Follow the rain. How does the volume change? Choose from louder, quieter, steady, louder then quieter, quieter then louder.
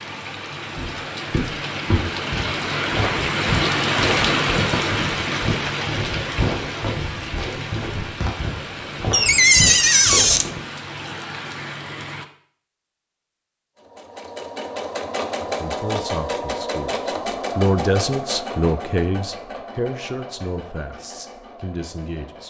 louder then quieter.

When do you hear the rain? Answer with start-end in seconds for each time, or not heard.
0.0-12.2.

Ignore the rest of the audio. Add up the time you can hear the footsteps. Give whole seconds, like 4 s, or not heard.
10 s.